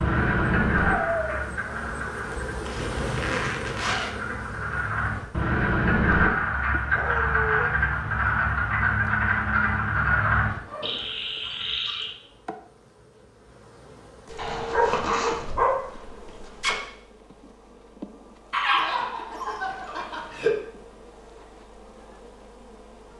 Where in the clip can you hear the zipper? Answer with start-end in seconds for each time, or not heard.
2.6-4.2, 14.3-15.5.